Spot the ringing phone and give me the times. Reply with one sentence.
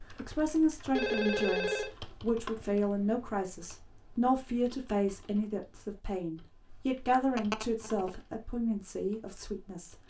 You can hear the ringing phone from 0.9 to 1.9 s and from 6.7 to 8.2 s.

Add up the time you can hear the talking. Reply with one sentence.
The talking can be heard for 10 seconds in total.